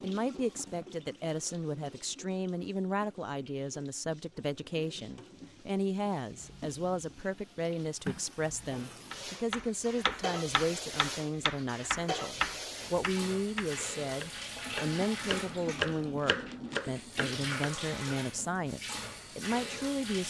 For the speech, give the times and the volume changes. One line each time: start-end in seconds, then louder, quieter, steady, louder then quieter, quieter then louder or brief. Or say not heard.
0.0-20.2 steady.